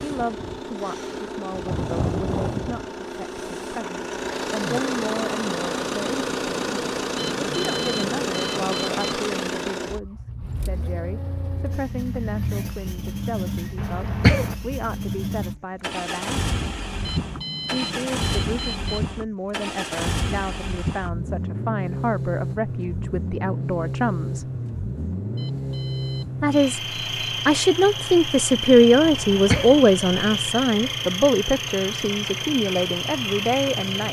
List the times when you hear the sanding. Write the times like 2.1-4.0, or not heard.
not heard.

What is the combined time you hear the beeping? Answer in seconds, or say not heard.
6 s.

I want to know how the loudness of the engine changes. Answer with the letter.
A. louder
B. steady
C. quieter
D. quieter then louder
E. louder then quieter
B.